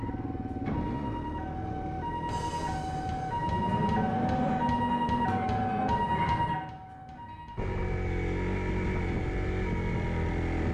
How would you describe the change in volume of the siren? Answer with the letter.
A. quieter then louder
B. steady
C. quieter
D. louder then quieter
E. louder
D.